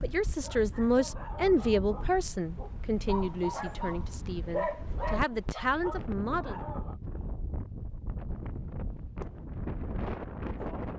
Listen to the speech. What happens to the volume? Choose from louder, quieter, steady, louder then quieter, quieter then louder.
quieter then louder.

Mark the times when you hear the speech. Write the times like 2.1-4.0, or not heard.
0.0-6.6.